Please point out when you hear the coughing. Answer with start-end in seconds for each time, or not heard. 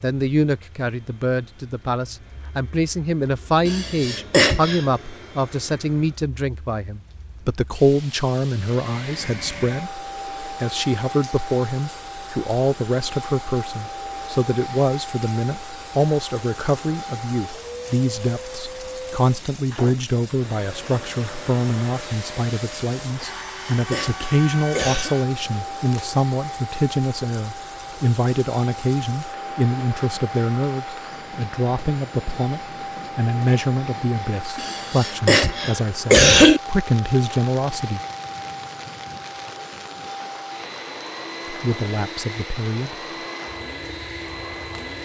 3.6-4.8, 23.2-25.1, 34.5-36.6.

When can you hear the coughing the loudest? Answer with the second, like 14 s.
36 s.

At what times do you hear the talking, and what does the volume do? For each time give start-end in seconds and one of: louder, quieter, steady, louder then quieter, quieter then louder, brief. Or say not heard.
0.0-38.0 steady
41.5-43.0 brief.